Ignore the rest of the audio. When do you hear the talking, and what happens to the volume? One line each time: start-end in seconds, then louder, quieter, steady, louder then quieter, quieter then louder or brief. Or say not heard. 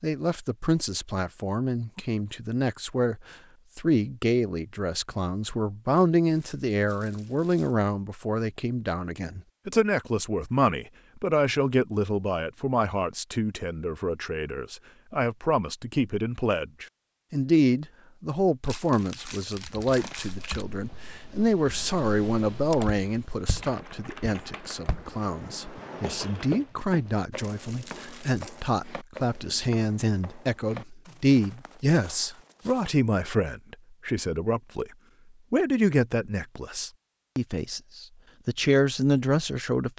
0.0-34.9 steady
35.5-39.9 quieter then louder.